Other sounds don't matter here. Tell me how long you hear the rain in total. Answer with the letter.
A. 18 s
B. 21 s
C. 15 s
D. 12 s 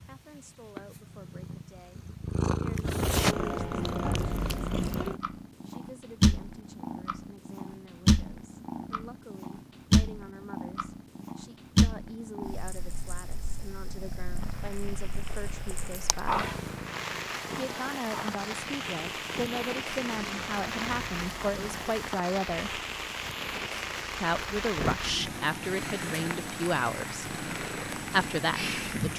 C.